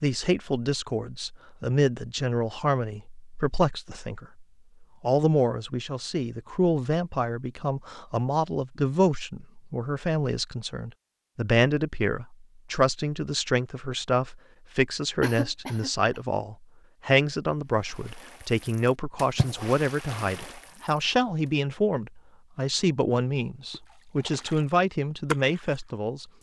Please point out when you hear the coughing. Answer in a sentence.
You can hear the coughing from 15.2 to 16.2 s.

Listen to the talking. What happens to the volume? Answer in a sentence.
The loudness of the talking stays about the same.